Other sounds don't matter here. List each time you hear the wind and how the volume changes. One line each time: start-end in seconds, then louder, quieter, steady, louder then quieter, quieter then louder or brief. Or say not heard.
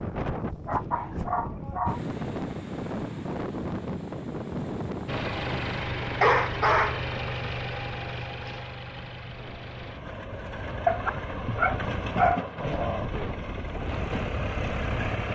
0.0-15.3 quieter then louder.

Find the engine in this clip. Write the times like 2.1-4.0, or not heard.
5.0-15.3.